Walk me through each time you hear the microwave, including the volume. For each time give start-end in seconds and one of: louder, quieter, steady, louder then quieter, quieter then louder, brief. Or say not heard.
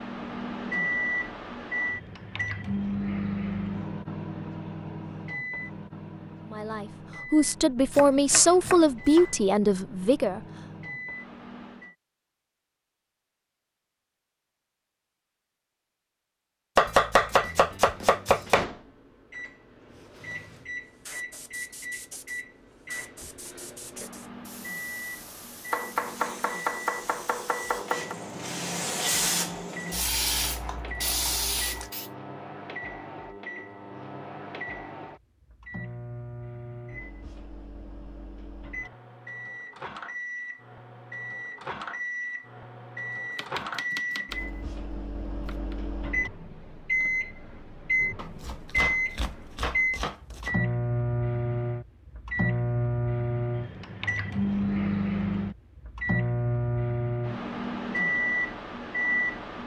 0.0-11.9 quieter
17.3-59.6 louder.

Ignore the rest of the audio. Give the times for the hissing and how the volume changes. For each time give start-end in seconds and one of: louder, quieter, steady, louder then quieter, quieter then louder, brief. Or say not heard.
19.9-32.1 louder.